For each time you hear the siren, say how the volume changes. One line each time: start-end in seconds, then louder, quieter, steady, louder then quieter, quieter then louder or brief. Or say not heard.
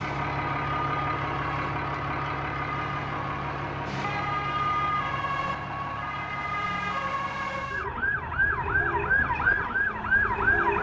0.0-10.7 louder.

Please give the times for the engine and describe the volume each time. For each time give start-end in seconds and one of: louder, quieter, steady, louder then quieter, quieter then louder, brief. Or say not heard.
0.0-10.7 quieter.